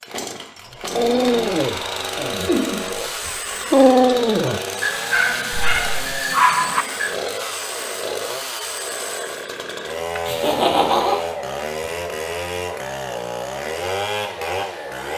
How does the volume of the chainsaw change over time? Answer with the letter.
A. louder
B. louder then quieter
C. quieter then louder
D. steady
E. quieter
D.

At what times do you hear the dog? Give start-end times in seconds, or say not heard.
0.9-2.5, 3.2-7.2.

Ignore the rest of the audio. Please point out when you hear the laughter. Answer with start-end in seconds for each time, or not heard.
2.4-2.8, 5.5-6.0, 10.2-11.2.